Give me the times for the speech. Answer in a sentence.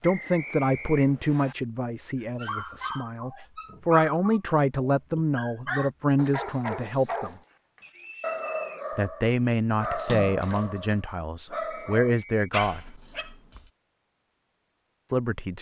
You can hear the speech from 0.0 to 7.3 s, from 8.9 to 12.8 s and from 15.1 to 15.5 s.